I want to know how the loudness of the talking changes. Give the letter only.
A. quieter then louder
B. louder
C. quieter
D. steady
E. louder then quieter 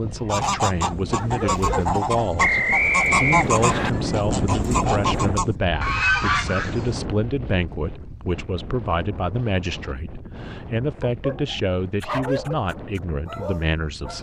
D.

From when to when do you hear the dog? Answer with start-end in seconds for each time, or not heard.
0.0-2.0, 11.0-14.1.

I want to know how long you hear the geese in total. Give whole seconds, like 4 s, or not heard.
7 s.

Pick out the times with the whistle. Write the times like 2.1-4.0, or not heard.
2.4-3.9.